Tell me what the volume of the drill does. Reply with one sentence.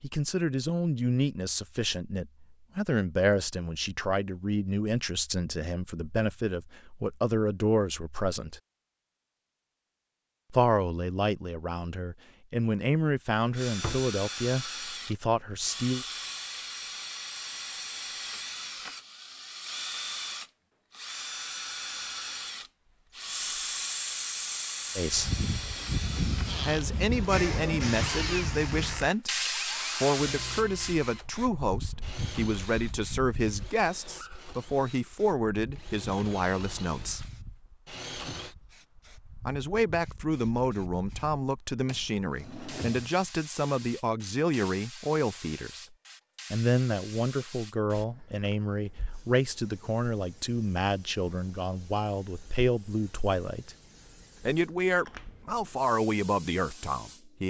The volume of the drill goes down.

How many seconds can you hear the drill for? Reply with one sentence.
The drill can be heard for 25 seconds in total.